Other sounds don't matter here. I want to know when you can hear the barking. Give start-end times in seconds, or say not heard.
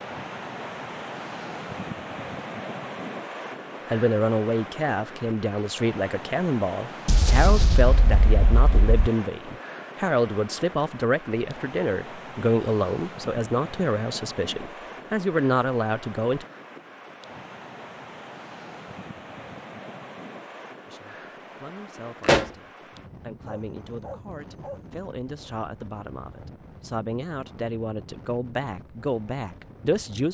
23.4-24.8.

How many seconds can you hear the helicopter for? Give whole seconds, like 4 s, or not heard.
not heard.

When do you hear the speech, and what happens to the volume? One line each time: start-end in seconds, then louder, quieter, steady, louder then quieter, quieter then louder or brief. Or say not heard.
3.9-16.4 steady
20.9-30.3 louder.